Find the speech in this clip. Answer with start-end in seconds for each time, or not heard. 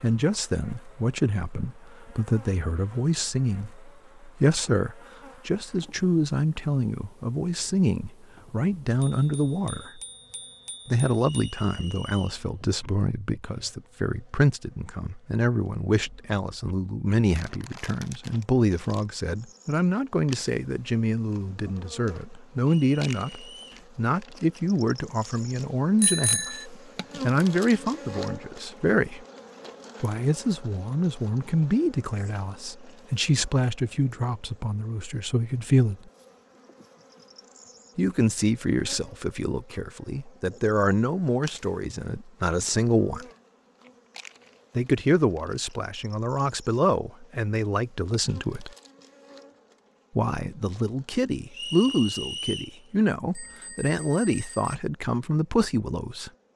0.0-10.0, 10.8-29.2, 30.0-36.1, 38.0-43.2, 44.8-48.7, 50.1-56.3.